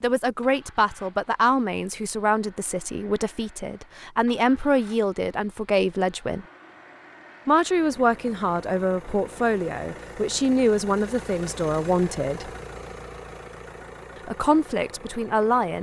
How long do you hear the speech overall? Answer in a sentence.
You can hear the speech for 13 seconds altogether.